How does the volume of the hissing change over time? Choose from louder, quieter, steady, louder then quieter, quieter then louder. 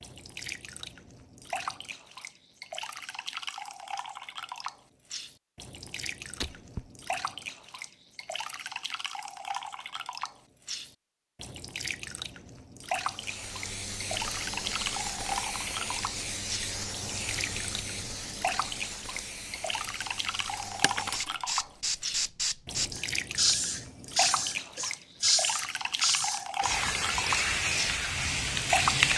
louder.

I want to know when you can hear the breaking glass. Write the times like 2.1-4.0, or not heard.
6.4-6.8, 20.8-21.4.